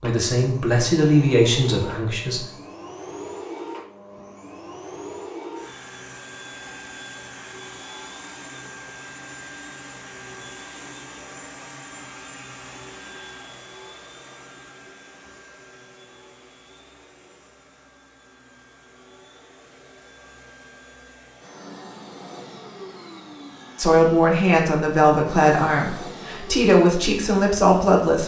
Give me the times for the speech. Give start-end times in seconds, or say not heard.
0.0-2.5, 23.8-28.2.